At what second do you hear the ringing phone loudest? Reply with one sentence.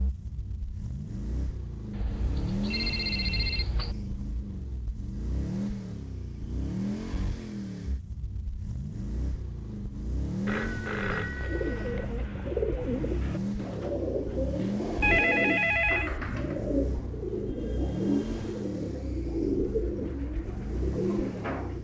The loudest moment of the ringing phone is at 15 seconds.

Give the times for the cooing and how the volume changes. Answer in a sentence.
You can hear the cooing from 11.3 to 21.7 s, at a steady volume.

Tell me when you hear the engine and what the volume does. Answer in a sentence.
You can hear the engine from 0.0 to 21.7 s, at a steady volume.